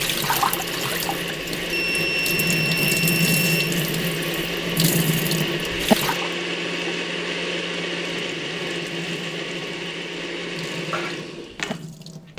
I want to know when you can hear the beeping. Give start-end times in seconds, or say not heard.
1.7-3.8.